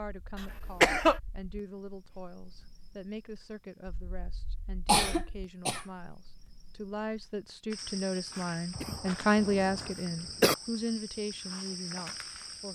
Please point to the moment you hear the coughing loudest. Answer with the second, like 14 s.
1 s.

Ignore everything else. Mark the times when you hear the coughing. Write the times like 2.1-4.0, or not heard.
0.3-1.2, 4.8-5.8, 8.8-10.6.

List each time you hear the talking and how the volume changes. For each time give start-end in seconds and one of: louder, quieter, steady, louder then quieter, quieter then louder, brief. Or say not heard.
0.0-12.6 louder then quieter.